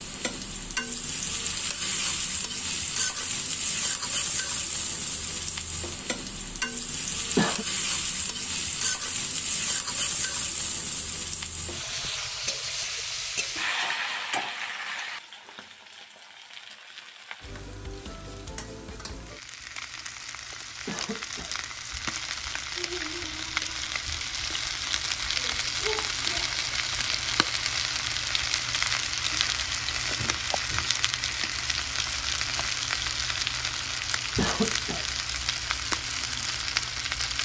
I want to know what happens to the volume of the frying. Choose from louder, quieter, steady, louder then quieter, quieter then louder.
quieter then louder.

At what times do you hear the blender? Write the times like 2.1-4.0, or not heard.
not heard.